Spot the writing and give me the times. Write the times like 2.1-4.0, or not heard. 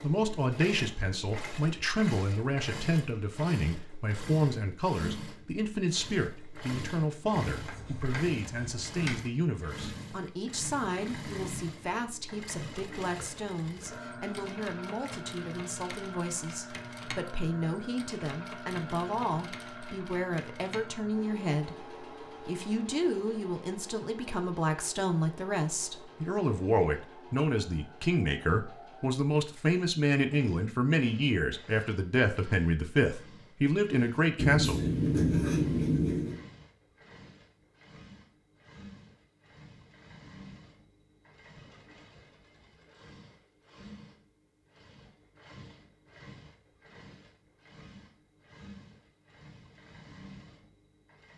7.5-9.2, 34.4-36.4.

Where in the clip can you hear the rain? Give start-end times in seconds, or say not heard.
not heard.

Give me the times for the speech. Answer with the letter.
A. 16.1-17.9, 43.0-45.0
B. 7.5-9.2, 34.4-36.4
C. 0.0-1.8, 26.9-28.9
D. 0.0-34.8
D.